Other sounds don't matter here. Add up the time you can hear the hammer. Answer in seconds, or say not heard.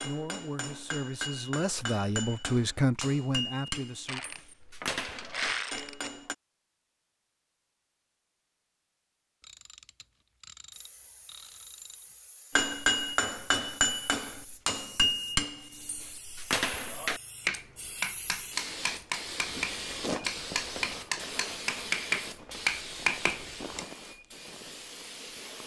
18 s.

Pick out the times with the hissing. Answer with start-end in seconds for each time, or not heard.
10.7-25.6.